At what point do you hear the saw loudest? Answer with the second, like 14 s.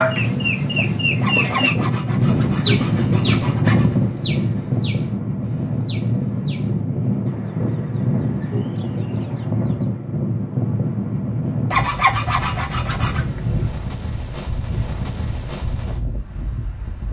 12 s.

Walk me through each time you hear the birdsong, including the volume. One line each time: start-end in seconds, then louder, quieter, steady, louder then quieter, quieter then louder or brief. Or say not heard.
0.0-9.9 quieter.